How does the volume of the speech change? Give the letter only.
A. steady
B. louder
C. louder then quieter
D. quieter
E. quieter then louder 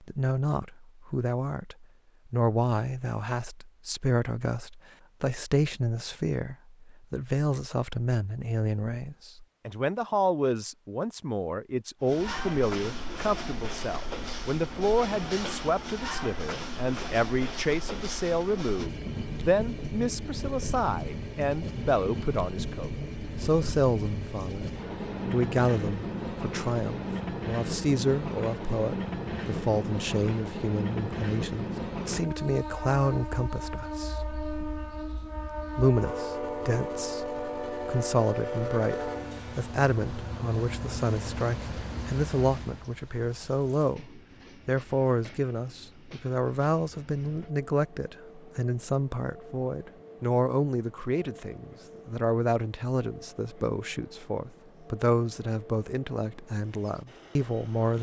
A.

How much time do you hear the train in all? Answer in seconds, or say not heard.
46 s.